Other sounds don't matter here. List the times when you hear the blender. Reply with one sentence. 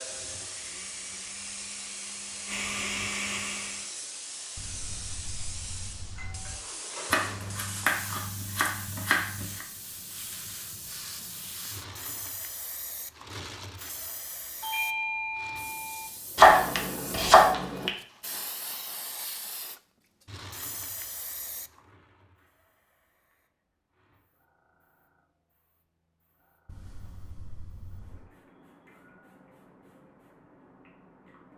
You can hear the blender from 0.0 to 3.9 s.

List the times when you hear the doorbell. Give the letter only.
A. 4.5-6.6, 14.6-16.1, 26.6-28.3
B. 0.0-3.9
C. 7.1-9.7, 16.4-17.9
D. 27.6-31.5
A.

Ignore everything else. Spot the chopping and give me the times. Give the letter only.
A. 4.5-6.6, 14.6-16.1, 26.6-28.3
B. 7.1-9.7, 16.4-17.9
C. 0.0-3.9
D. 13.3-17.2
B.